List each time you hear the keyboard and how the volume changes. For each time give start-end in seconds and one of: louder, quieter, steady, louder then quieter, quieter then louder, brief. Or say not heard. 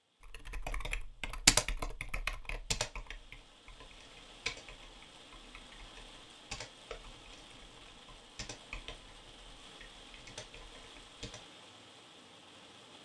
0.2-11.4 quieter.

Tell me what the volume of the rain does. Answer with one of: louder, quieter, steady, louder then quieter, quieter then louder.
louder.